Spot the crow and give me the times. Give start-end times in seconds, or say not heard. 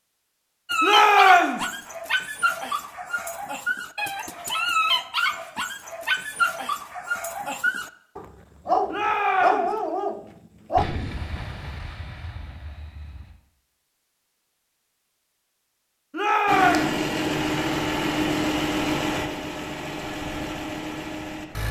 not heard.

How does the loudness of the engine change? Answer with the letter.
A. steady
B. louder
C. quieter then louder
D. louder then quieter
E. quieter
E.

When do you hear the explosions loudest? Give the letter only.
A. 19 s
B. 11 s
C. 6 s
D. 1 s
B.